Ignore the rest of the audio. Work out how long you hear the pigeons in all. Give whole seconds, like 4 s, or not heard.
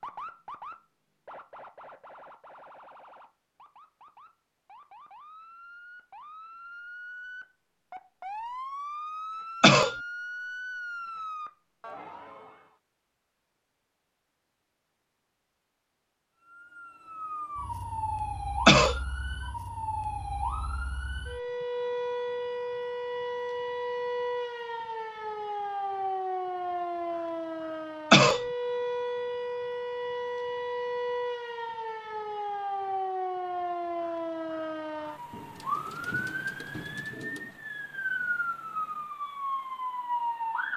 2 s.